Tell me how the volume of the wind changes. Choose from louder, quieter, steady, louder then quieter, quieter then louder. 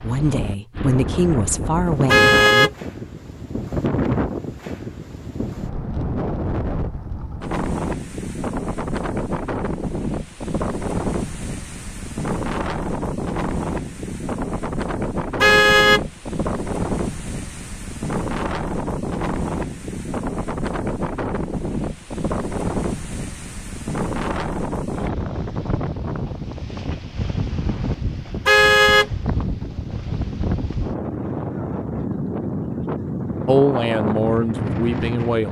steady.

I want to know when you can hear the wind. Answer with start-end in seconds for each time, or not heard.
0.0-35.4.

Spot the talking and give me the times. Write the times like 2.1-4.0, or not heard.
0.0-2.7, 33.5-35.4.